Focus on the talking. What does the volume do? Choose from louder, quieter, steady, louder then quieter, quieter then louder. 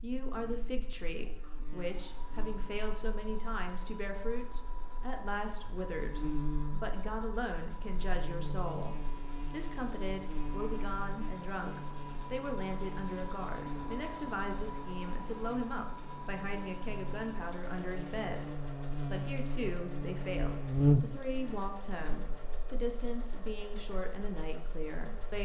steady.